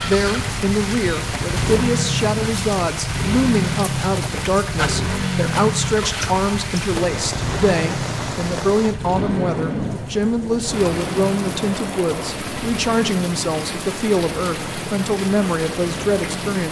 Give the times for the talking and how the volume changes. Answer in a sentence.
The talking can be heard from 0.0 to 16.6 s, at a steady volume.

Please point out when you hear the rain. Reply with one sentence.
You can hear the rain from 0.0 to 16.6 s.